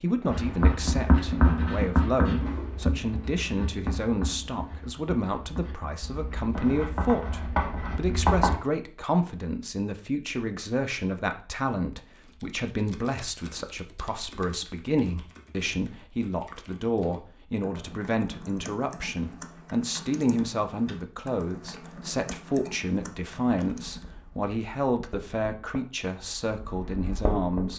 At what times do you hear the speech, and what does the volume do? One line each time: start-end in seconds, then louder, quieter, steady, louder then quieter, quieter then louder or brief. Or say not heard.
0.0-27.7 steady.